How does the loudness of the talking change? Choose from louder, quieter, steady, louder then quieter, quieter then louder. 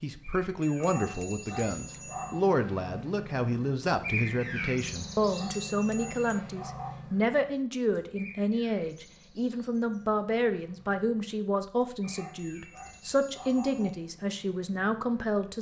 steady.